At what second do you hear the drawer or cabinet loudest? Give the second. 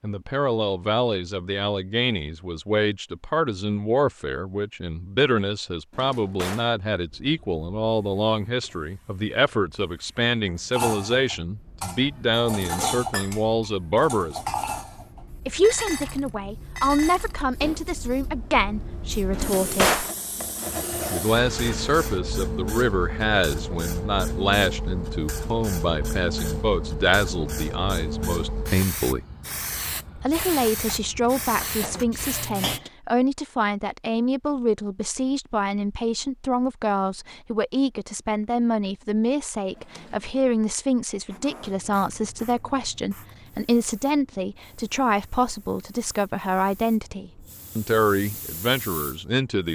20 s.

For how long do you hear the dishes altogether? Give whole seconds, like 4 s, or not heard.
9 s.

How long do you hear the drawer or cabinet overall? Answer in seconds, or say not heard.
2 s.